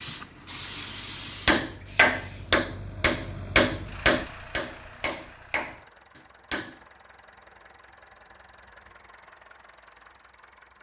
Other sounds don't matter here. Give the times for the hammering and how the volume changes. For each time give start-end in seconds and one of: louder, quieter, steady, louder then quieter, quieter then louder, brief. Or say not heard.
1.4-6.8 quieter.